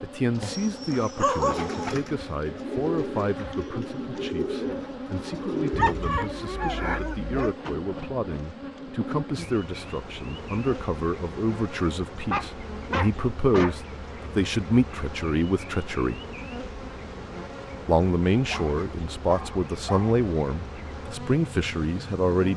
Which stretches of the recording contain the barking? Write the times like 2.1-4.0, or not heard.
0.4-1.9, 5.7-7.5, 12.3-13.8, 18.5-20.2.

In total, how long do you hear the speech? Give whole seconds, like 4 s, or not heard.
21 s.